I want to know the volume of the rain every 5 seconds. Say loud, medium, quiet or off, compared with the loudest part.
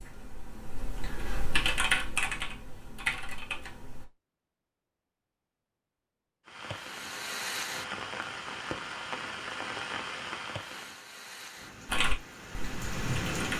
off, loud, loud.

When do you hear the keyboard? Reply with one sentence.
The keyboard can be heard from 0.0 to 4.0 s and from 11.8 to 13.5 s.